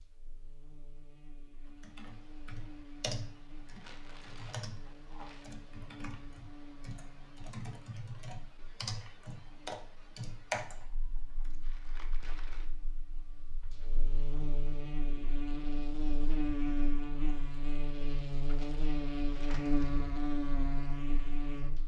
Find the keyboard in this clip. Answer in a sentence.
The keyboard can be heard from 1.8 to 12.8 s.